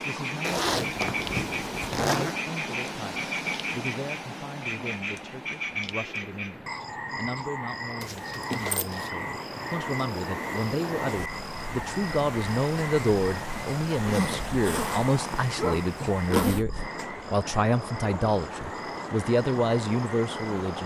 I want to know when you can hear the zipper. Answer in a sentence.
The zipper can be heard from 0.4 to 2.4 s, from 8.0 to 9.1 s and from 13.9 to 16.6 s.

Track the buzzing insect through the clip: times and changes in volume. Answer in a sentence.
The buzzing insect can't be heard in this clip.